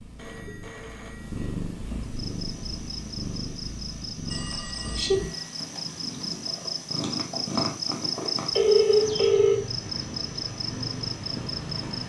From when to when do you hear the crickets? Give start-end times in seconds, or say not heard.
2.0-12.0.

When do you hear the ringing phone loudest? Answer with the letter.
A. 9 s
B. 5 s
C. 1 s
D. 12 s
A.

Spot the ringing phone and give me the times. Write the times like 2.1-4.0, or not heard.
0.1-1.6, 4.2-5.5, 8.6-9.6.